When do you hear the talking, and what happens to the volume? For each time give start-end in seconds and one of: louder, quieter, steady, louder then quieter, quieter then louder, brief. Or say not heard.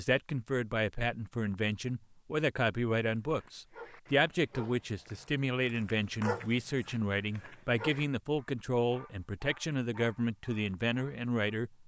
0.0-11.8 steady.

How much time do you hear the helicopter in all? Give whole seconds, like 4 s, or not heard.
not heard.